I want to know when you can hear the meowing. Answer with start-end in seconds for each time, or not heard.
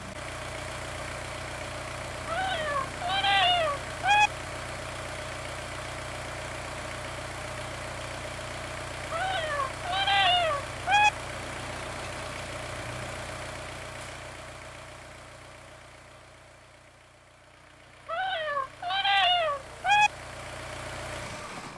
2.2-4.3, 9.1-11.1, 18.1-20.1.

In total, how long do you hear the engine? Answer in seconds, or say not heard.
22 s.